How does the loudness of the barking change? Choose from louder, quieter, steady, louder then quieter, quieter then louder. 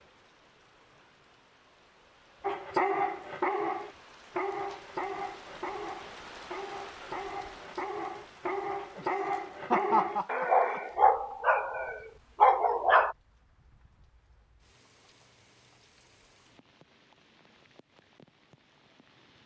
quieter then louder.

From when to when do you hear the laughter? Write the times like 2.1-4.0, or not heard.
8.9-11.3.